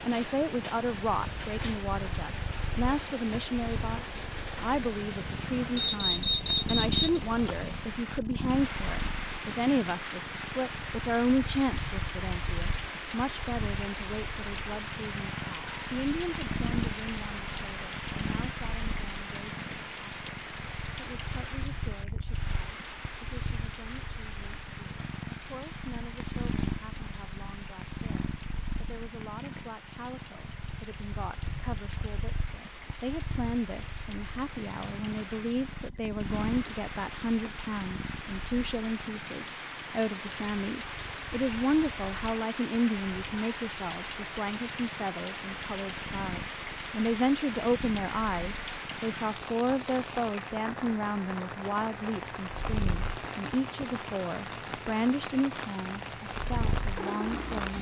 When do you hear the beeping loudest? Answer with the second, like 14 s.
6 s.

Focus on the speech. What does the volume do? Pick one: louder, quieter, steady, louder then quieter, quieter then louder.
quieter then louder.